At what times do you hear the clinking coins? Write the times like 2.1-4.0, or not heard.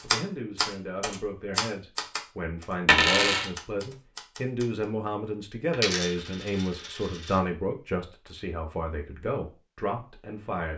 2.9-3.5, 5.7-7.3.